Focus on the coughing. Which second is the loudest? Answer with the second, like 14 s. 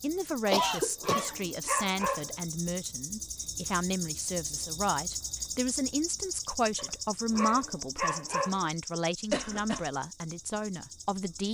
1 s.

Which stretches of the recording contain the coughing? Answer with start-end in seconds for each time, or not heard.
0.5-1.4, 9.3-9.9.